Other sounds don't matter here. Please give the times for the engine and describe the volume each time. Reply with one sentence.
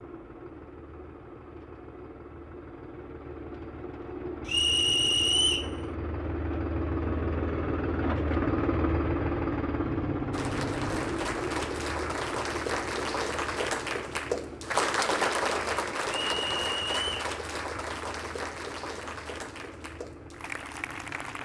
The engine can be heard from 0.0 to 21.4 s, getting louder then quieter.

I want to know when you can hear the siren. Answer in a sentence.
The siren can't be heard in this clip.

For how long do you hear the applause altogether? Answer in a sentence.
The applause can be heard for 11 seconds in total.